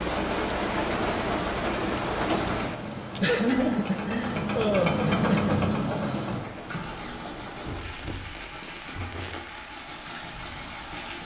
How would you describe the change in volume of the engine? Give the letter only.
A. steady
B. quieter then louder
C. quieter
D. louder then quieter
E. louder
D.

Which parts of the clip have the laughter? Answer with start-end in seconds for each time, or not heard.
3.1-5.7.